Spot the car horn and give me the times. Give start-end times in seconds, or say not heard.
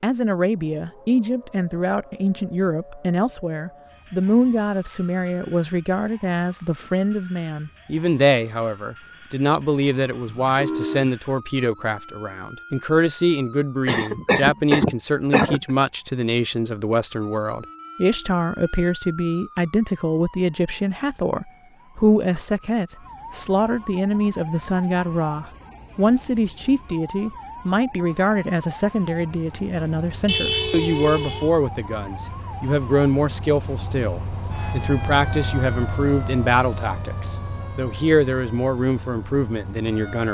10.2-11.1, 30.2-31.5.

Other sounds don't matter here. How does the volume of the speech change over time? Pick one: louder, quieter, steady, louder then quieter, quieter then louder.
steady.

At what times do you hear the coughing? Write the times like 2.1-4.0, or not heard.
13.8-15.6.